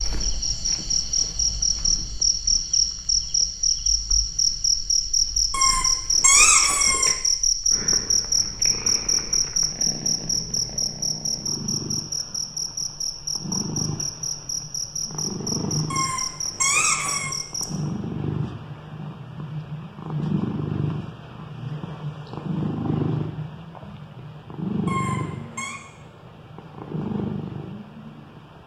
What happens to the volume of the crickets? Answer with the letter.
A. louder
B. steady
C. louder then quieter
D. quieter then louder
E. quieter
E.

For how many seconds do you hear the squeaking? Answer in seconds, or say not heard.
4 s.